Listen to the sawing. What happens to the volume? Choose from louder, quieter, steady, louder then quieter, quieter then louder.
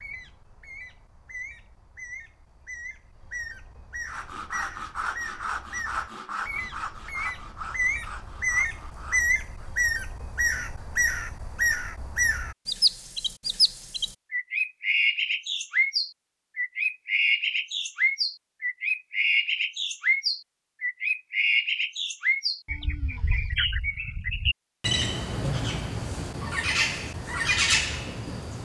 quieter.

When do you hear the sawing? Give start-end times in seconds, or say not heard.
4.0-9.7.